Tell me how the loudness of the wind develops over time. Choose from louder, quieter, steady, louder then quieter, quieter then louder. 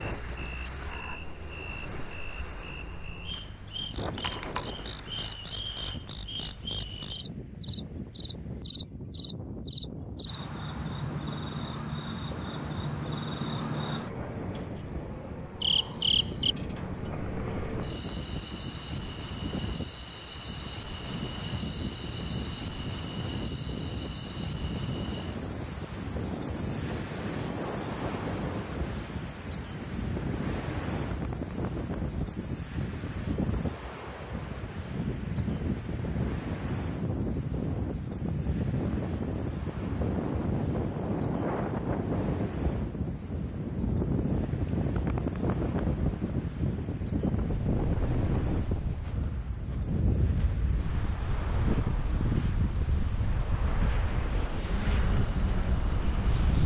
louder.